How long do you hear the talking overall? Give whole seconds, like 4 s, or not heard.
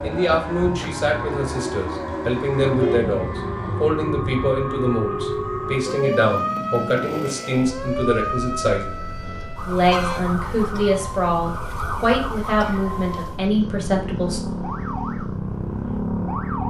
14 s.